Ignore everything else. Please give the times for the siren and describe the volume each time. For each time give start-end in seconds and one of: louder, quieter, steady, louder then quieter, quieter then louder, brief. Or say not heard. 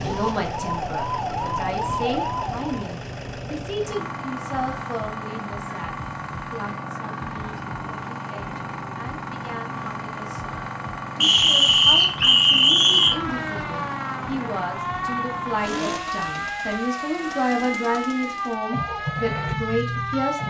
0.0-2.8 brief
12.9-20.4 steady.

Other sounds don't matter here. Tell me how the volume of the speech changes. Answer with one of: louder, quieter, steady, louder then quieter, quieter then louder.
quieter then louder.